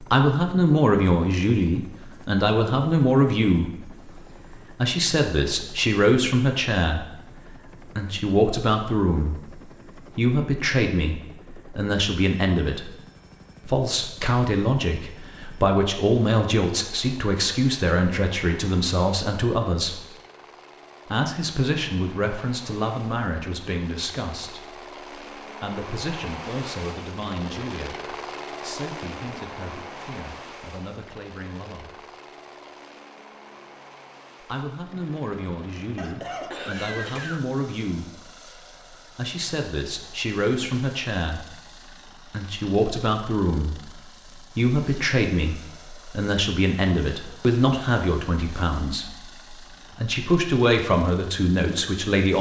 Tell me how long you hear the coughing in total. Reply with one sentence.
You can hear the coughing for 2 seconds altogether.